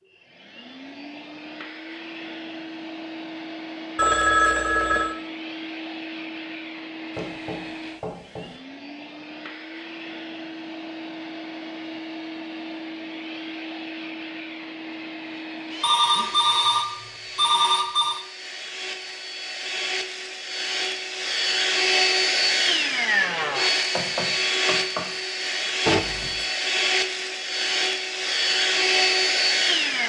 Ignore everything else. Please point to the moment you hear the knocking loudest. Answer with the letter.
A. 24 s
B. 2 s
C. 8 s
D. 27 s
A.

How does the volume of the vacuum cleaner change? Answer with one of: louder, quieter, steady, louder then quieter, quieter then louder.
louder.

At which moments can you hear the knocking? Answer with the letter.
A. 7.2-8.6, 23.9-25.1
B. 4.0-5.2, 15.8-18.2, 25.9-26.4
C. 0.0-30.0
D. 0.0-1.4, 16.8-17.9
A.